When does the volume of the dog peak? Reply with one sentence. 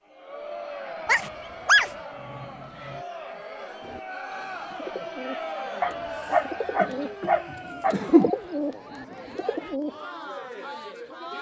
The volume of the dog peaks at 2 seconds.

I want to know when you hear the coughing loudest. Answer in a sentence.
The loudest moment of the coughing is at 8 seconds.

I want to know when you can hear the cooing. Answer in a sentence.
The cooing can be heard from 3.8 to 10.0 s.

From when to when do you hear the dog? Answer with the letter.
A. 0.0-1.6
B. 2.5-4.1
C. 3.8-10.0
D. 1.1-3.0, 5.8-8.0
D.